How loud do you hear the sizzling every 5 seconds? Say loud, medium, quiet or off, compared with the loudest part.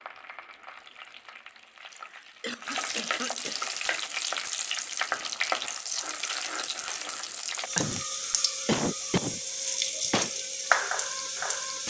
medium, loud, loud.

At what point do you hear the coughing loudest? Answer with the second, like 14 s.
9 s.